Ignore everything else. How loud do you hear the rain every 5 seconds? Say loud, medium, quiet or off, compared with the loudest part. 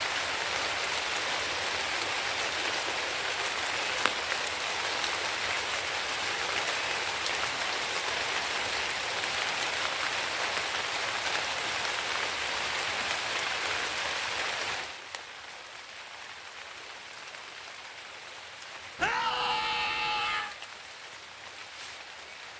loud, loud, loud, quiet, quiet.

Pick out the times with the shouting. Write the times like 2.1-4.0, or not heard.
18.9-20.6.